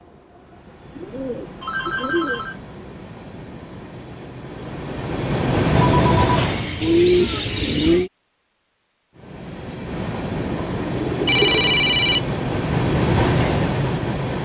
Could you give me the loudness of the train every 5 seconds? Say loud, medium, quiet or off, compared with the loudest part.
quiet, loud, loud.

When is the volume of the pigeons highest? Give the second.
7 s.